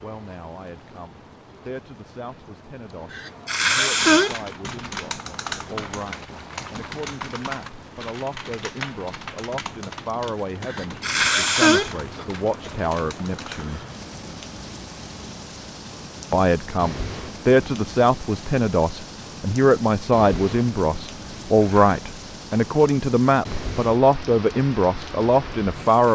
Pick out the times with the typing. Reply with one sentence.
The typing can be heard from 4.1 to 13.8 s.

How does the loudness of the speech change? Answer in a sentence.
The loudness of the speech goes up.